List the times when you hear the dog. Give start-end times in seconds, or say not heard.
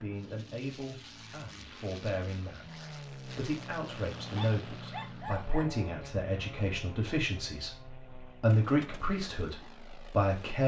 4.3-5.8.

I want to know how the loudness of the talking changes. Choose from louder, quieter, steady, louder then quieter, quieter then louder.
louder.